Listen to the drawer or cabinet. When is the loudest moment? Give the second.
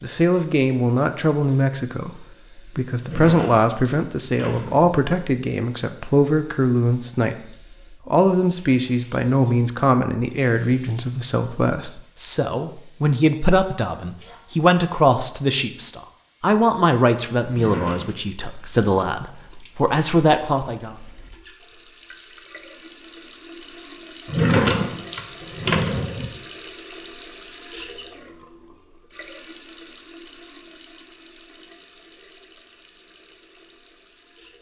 25 s.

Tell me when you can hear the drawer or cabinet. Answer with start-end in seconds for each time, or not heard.
3.0-4.9, 17.4-18.1, 24.2-26.3.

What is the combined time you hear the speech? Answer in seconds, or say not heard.
21 s.